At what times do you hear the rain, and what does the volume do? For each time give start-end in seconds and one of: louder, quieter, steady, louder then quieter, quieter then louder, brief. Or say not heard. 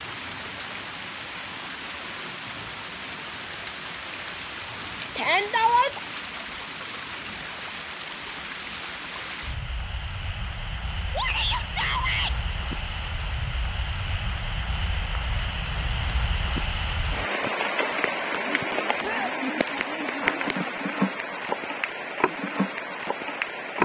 0.0-23.7 louder.